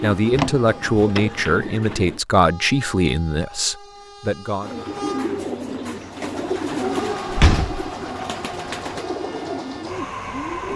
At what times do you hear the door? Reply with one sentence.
The door can be heard from 0.3 to 1.2 s and from 7.3 to 7.9 s.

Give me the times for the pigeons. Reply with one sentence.
The pigeons can be heard from 0.0 to 2.2 s and from 4.6 to 10.7 s.